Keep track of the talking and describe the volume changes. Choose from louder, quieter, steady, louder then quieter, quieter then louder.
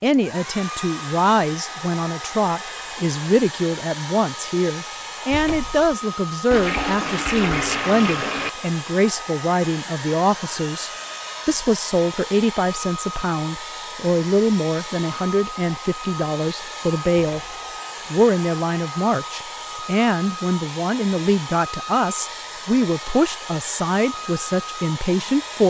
steady.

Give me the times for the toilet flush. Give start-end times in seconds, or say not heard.
6.5-8.5.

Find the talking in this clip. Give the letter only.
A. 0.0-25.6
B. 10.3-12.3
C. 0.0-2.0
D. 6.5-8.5
A.